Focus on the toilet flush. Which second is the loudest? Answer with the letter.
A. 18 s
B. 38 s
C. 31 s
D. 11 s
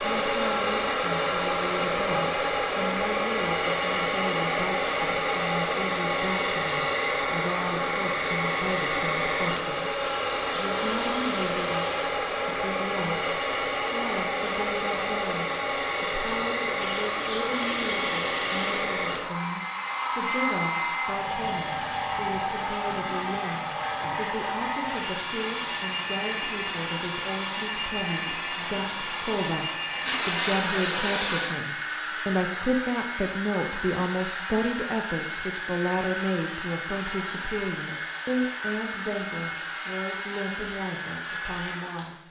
C.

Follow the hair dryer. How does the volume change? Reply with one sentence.
The loudness of the hair dryer goes down.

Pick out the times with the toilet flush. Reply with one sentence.
You can hear the toilet flush from 10.0 to 12.1 s, from 16.8 to 18.8 s and from 30.1 to 31.6 s.